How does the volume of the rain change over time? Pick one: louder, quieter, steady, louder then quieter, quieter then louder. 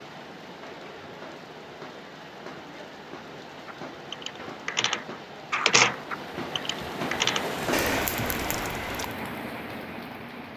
louder.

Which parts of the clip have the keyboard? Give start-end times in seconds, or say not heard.
3.6-9.1.